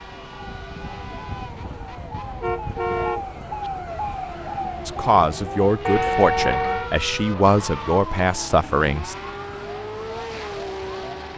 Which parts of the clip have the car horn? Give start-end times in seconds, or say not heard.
2.4-3.7, 5.8-6.9.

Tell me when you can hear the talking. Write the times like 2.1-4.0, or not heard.
4.8-9.2.